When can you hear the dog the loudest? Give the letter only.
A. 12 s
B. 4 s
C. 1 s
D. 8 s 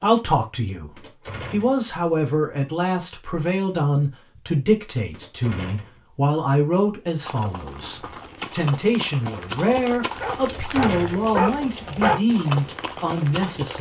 A.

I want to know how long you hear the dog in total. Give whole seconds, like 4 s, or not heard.
2 s.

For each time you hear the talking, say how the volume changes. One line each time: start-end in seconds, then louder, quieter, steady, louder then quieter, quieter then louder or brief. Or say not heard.
0.0-13.7 steady.